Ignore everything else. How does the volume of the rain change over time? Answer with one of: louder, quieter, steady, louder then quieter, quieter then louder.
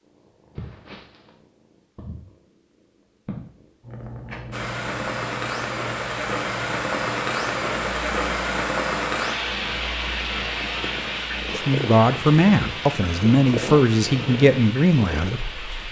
quieter.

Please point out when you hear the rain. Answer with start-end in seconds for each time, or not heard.
4.5-15.8.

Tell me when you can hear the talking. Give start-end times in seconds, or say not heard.
11.6-15.6.